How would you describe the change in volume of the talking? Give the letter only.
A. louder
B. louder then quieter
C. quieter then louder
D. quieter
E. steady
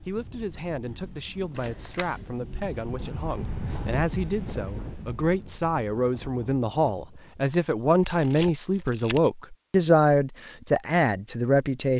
A.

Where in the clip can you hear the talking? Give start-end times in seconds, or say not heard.
0.1-11.9.